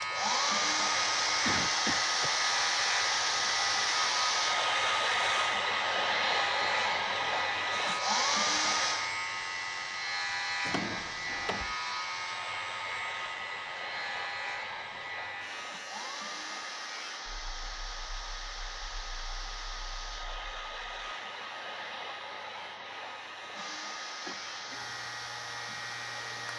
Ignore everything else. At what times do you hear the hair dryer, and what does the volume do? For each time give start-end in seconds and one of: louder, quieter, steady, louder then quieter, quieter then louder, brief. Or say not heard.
0.0-26.5 quieter.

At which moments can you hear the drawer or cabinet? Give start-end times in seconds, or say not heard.
10.7-11.8.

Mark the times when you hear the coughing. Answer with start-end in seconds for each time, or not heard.
1.4-2.4, 24.2-24.8.